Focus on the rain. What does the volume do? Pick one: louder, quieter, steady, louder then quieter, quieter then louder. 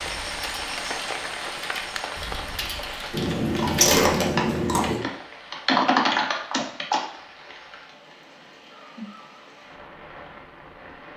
quieter.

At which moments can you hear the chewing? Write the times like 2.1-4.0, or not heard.
3.1-5.0.